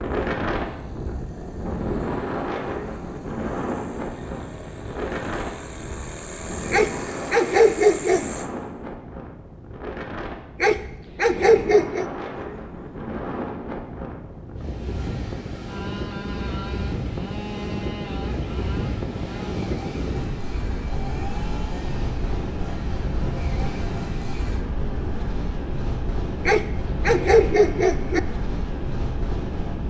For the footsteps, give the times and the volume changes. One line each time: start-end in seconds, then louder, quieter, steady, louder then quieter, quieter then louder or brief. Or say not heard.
not heard.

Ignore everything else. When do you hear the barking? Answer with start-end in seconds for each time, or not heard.
6.7-8.3, 10.6-12.1, 26.4-28.2.